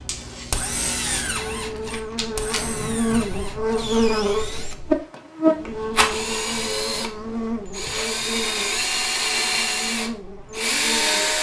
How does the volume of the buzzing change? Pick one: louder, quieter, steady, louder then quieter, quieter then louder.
louder then quieter.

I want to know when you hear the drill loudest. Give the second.
11 s.